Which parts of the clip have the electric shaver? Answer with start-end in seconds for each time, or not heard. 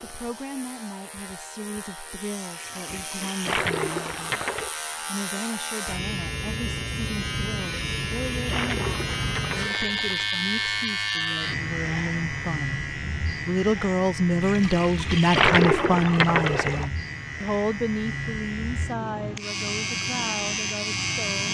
0.0-21.4.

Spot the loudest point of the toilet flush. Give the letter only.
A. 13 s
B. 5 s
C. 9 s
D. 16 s
D.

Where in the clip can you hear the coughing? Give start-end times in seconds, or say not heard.
not heard.